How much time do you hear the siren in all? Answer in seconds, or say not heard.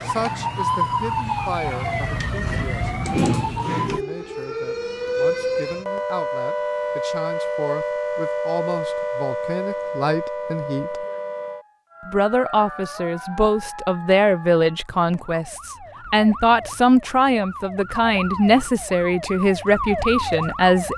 21 s.